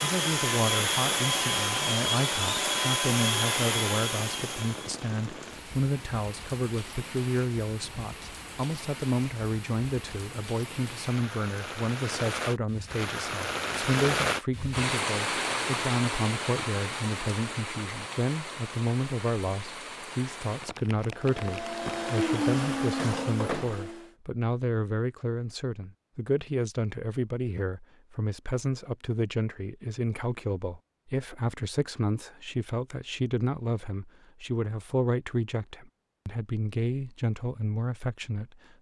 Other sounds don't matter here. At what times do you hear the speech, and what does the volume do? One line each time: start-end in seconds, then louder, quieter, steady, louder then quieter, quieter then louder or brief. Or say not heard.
0.0-38.5 steady.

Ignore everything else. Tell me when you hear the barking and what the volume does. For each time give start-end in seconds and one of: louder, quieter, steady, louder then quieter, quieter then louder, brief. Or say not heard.
not heard.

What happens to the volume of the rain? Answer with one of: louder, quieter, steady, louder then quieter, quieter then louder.
louder then quieter.